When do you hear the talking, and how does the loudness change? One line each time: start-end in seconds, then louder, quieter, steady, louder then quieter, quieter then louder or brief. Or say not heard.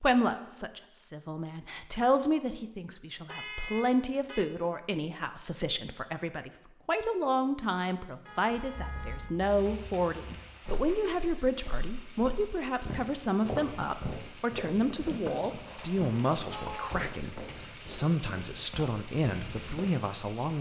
0.0-20.5 steady.